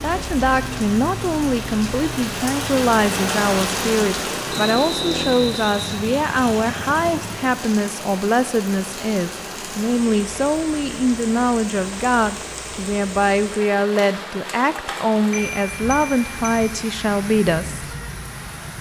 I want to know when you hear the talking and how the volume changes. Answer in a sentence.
The talking can be heard from 0.0 to 17.9 s, at a steady volume.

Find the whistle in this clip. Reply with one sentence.
You can hear the whistle from 4.5 to 6.0 s.